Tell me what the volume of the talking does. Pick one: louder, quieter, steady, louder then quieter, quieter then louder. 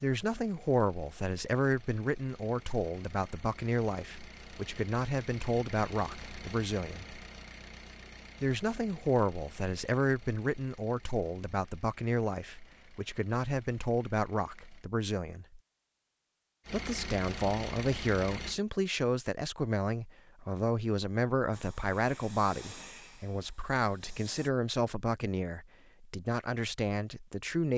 steady.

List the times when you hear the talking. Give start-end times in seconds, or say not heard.
0.0-7.2, 8.4-15.6, 16.7-27.7.